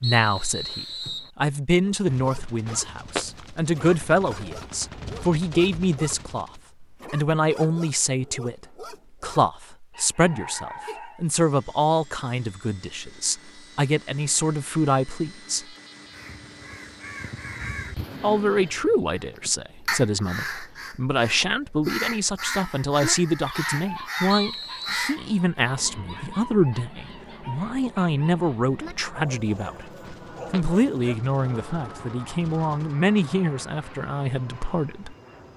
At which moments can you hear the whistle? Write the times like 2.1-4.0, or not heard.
0.0-1.3, 24.2-25.1.